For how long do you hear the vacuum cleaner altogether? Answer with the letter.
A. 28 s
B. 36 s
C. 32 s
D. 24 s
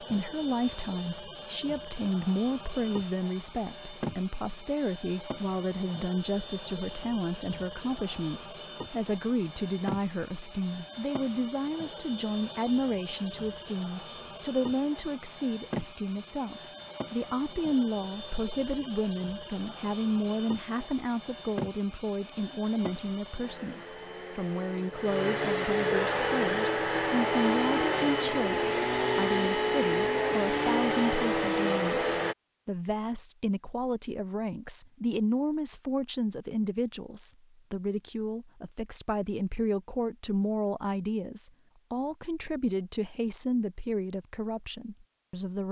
C.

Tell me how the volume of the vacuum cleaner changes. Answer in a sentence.
The loudness of the vacuum cleaner goes up.